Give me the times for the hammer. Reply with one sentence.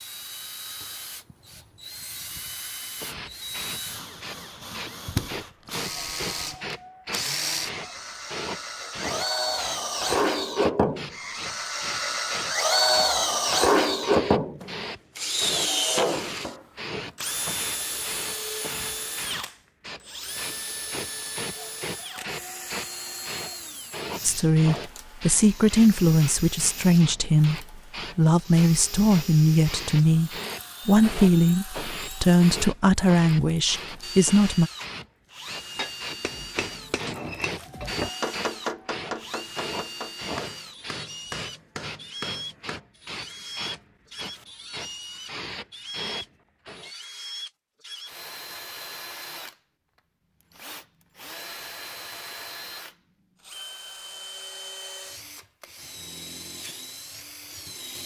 The hammer can be heard from 35.4 to 42.8 s.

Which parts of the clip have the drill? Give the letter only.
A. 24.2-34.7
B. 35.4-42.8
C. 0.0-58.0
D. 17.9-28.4
C.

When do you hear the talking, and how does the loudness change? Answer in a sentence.
The talking can be heard from 24.2 to 34.7 s, at a steady volume.